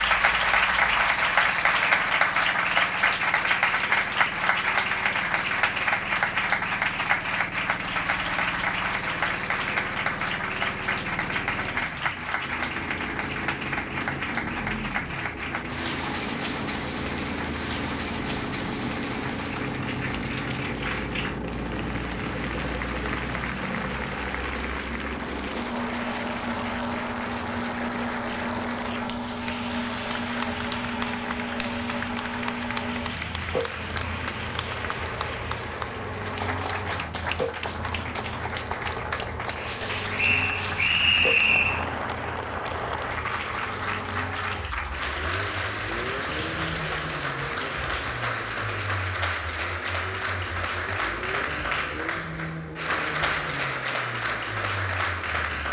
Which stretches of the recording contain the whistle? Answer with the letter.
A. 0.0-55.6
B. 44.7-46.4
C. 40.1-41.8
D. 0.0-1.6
C.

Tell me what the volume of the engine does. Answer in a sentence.
The loudness of the engine goes up, then down.